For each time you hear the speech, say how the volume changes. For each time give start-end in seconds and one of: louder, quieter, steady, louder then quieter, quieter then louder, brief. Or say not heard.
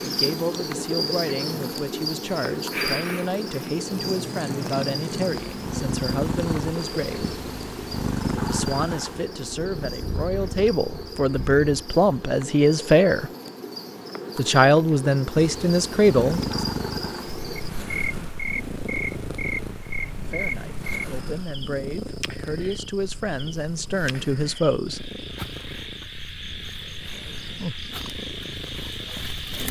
0.1-7.3 steady
8.4-13.3 louder
14.3-16.6 brief
20.2-25.1 louder.